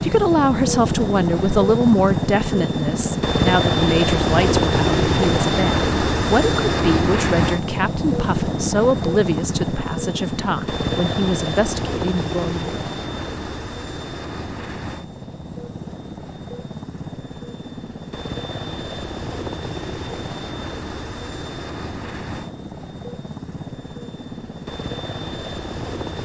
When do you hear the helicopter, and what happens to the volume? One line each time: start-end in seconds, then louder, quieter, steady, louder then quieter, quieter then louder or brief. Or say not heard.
0.0-26.2 quieter.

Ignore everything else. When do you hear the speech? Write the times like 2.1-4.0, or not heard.
0.0-12.8.